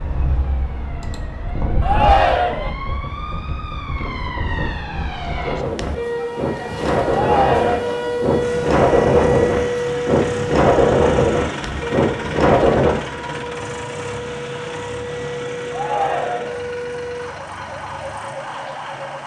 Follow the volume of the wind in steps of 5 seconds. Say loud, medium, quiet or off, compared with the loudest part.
quiet, loud, loud, off.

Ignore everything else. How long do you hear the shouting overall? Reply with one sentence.
The shouting can be heard for 3 seconds in total.